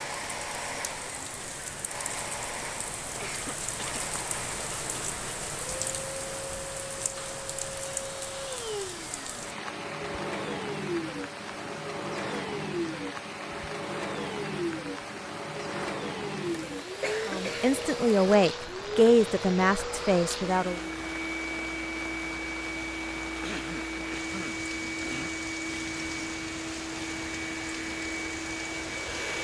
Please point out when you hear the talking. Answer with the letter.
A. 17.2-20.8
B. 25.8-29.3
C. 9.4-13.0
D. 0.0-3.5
A.